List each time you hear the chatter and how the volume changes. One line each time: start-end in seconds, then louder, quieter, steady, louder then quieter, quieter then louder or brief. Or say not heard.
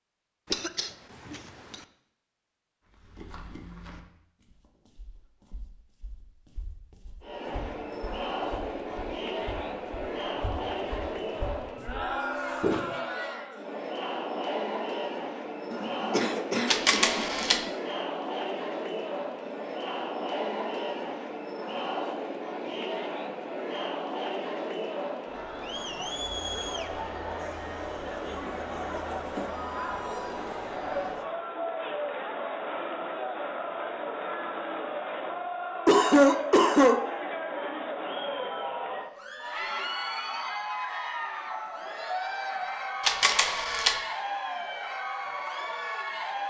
7.2-46.4 steady.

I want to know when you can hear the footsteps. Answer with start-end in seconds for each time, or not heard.
2.9-12.8.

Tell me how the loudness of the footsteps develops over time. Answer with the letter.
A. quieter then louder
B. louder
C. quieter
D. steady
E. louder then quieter
A.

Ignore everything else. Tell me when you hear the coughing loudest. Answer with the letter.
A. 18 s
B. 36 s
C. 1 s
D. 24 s
B.